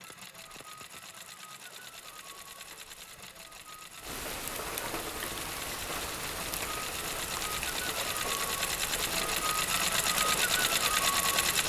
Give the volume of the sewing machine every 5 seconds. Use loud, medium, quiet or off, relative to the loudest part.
quiet, medium, loud.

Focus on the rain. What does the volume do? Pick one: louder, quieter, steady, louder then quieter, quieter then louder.
louder.